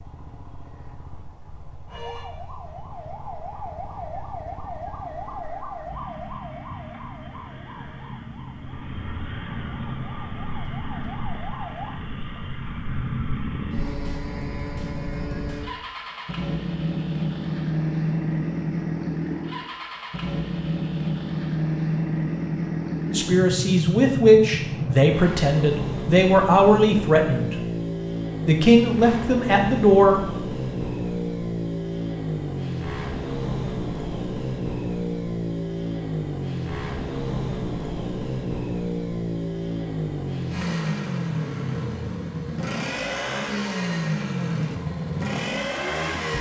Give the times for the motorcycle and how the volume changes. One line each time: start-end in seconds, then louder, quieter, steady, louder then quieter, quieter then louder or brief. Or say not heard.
0.0-46.3 louder.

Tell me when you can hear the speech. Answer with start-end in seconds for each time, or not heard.
23.1-27.6, 28.4-30.2.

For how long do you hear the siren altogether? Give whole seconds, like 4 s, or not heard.
10 s.